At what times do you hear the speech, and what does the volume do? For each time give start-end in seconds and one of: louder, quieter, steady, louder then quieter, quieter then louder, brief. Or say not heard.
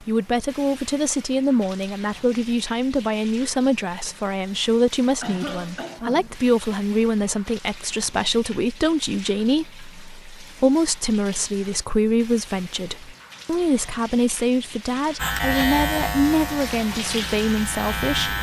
0.0-18.3 steady.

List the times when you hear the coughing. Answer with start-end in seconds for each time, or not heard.
5.2-6.3.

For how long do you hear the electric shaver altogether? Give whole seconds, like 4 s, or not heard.
3 s.